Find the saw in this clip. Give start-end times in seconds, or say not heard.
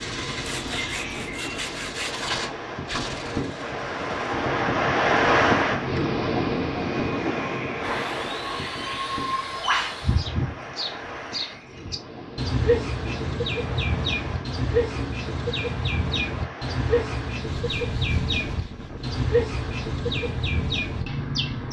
0.4-2.3, 7.8-10.3, 17.5-19.1.